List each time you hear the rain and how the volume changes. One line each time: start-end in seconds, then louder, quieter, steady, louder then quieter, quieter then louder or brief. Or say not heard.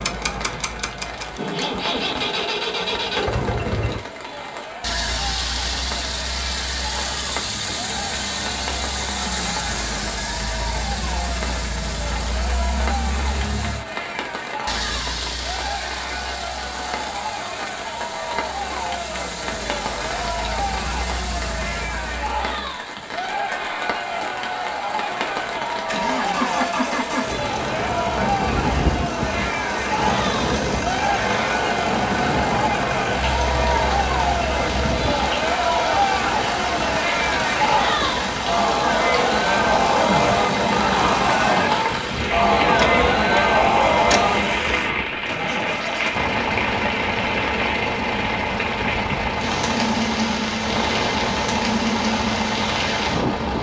0.1-53.5 louder.